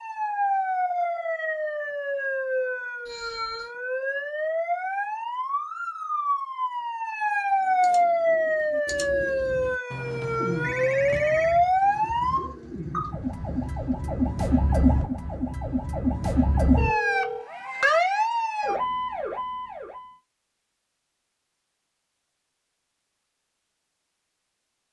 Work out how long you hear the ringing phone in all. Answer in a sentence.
You can hear the ringing phone for 3 seconds altogether.